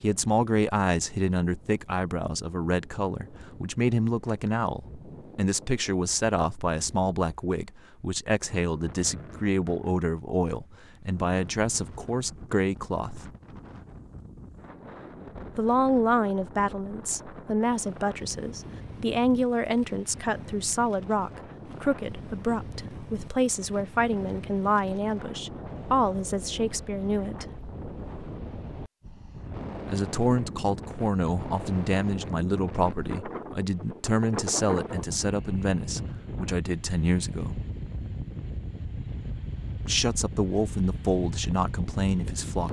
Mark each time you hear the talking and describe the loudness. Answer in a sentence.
The talking can be heard from 0.0 to 13.3 s, at a steady volume; from 15.6 to 27.6 s, at a steady volume; from 29.9 to 37.6 s, at a steady volume; and briefly from 39.9 to 42.6 s.